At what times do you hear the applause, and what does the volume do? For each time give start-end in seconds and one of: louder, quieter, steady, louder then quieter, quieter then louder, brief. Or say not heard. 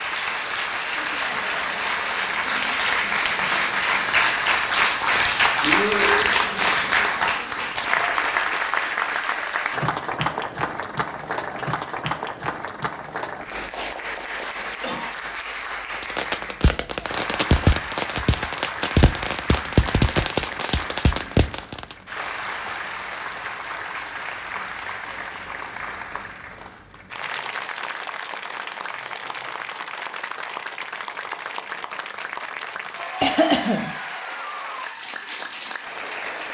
0.0-36.4 quieter.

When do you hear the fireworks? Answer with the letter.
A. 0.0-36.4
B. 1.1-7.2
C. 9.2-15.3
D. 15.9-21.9
D.